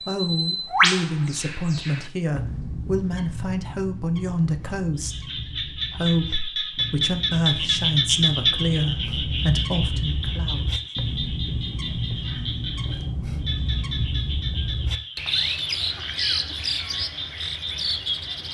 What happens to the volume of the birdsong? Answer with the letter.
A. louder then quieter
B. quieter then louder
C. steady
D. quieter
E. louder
B.